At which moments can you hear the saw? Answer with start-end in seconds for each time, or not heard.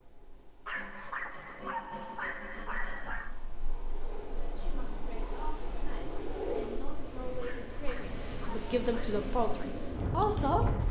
0.7-3.1.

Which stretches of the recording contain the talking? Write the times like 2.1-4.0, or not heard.
4.4-10.7.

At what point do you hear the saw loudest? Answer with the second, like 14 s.
2 s.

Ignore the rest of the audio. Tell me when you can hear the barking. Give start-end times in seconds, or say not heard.
0.7-3.4, 7.4-9.2.